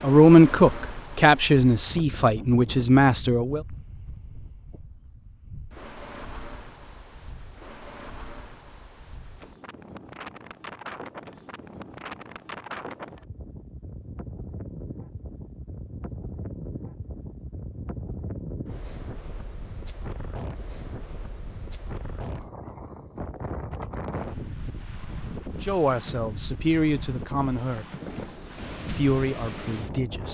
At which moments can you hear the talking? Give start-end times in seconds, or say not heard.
0.0-3.6, 25.6-27.9, 28.9-30.2.